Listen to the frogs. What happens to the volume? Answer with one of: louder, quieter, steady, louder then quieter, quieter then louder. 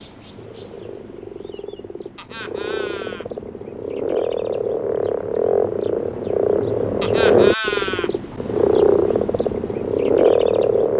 louder.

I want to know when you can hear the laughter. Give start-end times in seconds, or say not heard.
2.1-3.3, 7.0-8.1.